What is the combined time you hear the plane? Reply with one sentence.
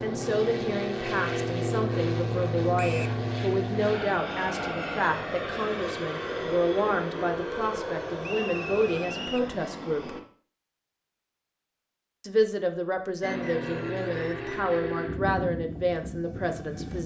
The plane can be heard for 14 seconds in total.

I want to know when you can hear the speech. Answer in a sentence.
The speech can be heard from 0.0 to 10.2 s and from 12.2 to 17.0 s.